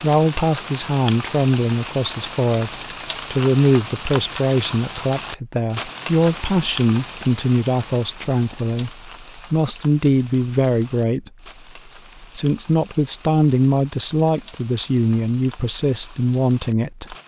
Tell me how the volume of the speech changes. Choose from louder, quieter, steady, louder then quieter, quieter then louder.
steady.